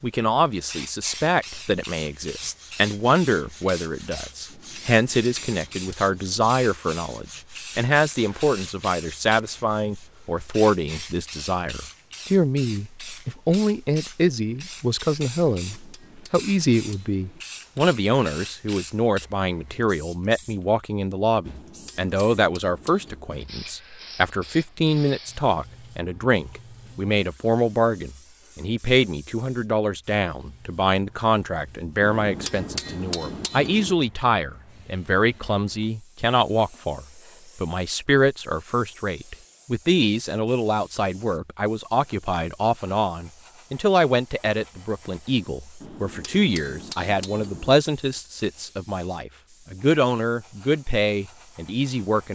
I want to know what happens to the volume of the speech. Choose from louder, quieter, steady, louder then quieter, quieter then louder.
steady.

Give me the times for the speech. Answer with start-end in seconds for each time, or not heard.
0.0-52.3.